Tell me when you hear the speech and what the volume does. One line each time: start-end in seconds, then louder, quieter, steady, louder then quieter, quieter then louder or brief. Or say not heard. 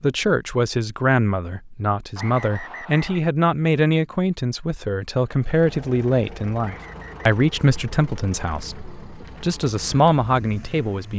0.0-11.1 steady.